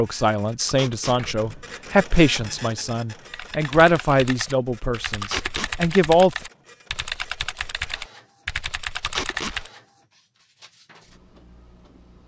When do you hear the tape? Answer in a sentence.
The tape can be heard from 0.7 to 1.2 s, from 5.2 to 5.7 s and from 9.1 to 9.6 s.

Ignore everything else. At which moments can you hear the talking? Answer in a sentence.
The talking can be heard from 0.0 to 6.3 s.